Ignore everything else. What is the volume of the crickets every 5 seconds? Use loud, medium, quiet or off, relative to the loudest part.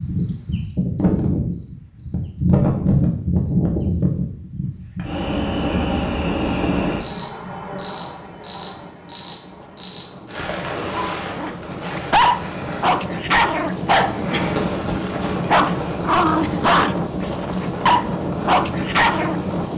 loud, loud, medium, medium.